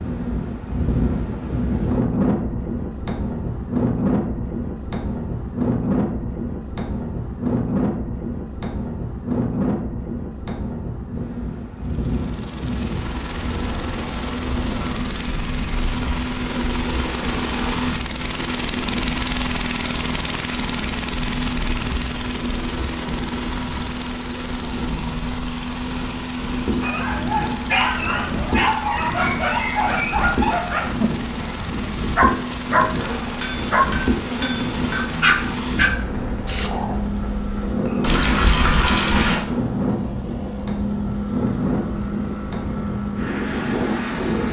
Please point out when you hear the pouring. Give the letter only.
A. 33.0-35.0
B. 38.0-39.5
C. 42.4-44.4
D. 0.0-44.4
B.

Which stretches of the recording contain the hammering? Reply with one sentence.
The hammering can be heard from 33.0 to 35.0 s.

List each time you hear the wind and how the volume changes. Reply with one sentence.
The wind can be heard from 0.0 to 44.4 s, getting quieter then louder.